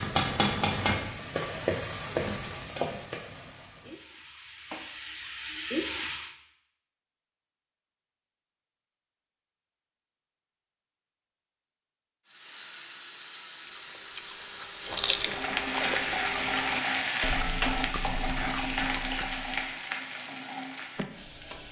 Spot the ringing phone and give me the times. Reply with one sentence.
The ringing phone can't be heard in this clip.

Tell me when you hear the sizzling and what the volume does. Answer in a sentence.
The sizzling can be heard from 0.0 to 6.3 s, getting quieter then louder; and from 12.2 to 21.6 s, getting louder then quieter.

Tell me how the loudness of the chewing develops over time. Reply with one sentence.
The loudness of the chewing goes down.